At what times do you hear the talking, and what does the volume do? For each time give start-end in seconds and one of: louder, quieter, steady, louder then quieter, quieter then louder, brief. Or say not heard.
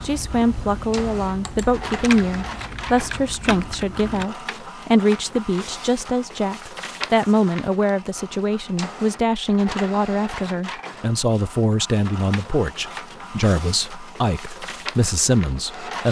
0.0-16.0 steady.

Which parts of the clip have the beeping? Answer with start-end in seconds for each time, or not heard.
not heard.